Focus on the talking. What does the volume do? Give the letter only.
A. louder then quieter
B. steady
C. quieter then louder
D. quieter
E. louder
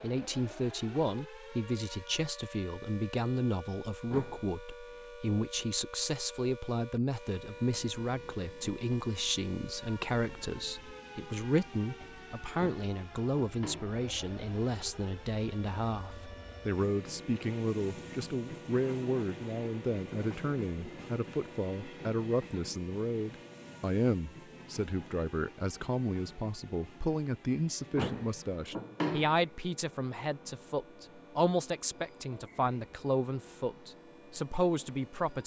B.